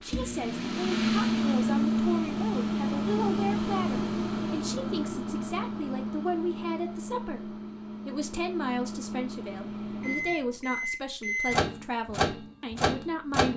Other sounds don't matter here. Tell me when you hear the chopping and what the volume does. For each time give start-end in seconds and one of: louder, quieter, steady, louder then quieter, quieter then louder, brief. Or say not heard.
not heard.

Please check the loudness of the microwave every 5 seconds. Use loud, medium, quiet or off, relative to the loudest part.
loud, medium, loud.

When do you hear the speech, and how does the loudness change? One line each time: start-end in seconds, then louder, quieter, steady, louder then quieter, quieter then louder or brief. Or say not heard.
0.0-13.5 steady.